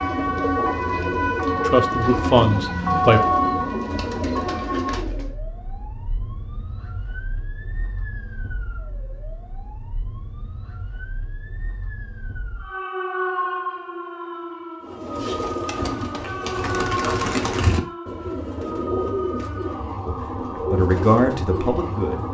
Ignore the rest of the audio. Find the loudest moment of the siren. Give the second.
3 s.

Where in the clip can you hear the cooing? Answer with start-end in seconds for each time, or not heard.
0.0-5.3, 14.8-22.2.